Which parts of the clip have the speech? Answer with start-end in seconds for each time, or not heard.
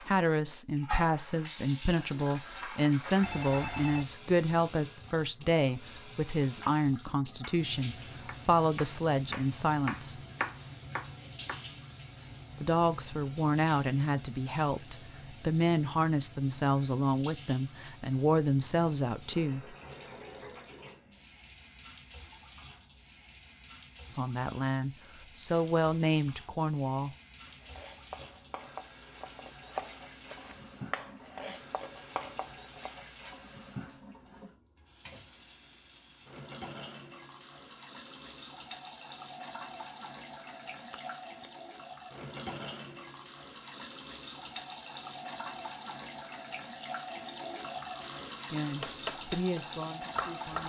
0.0-10.2, 12.6-19.8, 24.1-27.1, 48.5-50.6.